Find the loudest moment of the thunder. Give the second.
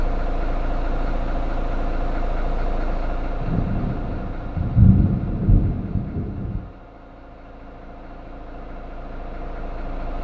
5 s.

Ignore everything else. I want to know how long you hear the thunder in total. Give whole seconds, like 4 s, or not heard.
3 s.